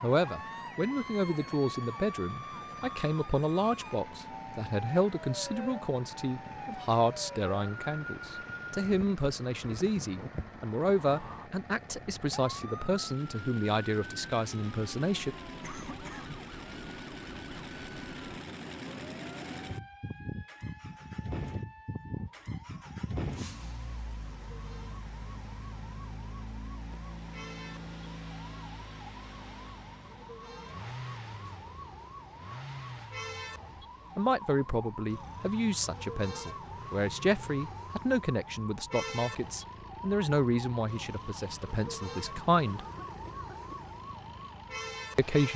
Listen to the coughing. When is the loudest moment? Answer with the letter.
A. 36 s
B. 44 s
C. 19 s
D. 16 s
D.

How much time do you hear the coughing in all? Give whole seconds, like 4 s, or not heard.
2 s.